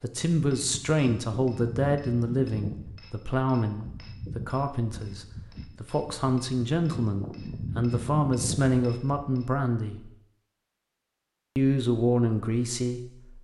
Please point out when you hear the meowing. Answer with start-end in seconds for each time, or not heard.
not heard.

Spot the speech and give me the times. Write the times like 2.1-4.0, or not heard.
0.0-10.1, 11.6-13.3.